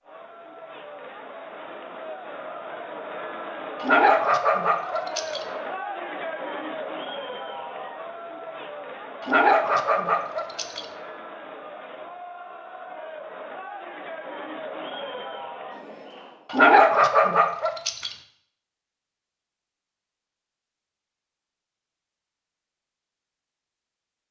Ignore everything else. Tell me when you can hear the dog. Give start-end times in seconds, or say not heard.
3.8-5.4, 9.2-10.8, 16.5-18.1.